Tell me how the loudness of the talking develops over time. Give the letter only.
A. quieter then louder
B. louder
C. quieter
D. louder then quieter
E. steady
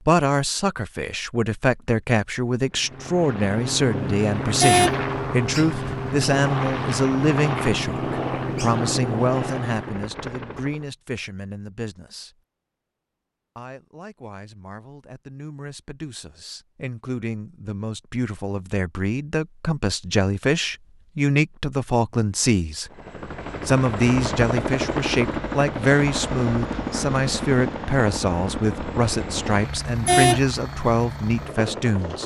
A.